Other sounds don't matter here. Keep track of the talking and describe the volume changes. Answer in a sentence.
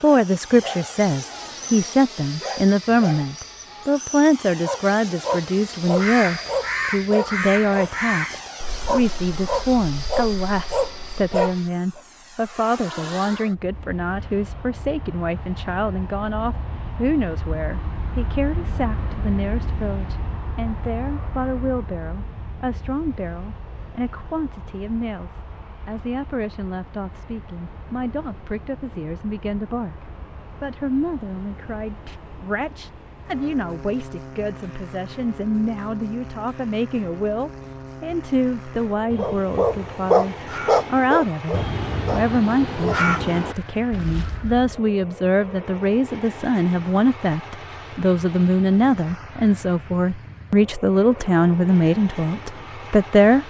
The volume of the talking goes down, then up.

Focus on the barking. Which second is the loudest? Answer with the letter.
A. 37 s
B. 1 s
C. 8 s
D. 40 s
D.